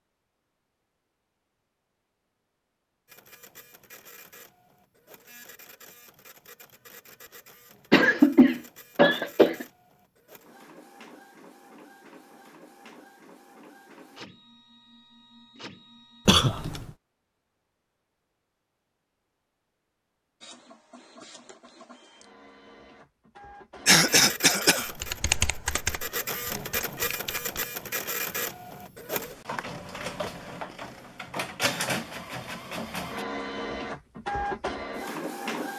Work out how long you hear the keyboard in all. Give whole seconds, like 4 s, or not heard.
3 s.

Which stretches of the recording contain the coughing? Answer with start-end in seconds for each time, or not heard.
7.9-9.7, 16.2-16.9, 23.9-24.9.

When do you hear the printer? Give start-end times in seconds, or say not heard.
3.0-16.4, 20.4-35.7.